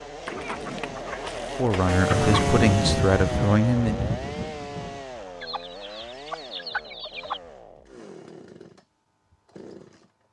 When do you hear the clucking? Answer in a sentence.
You can hear the clucking from 0.2 to 2.6 s and from 5.4 to 7.4 s.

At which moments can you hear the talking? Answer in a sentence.
You can hear the talking from 1.6 to 4.1 s.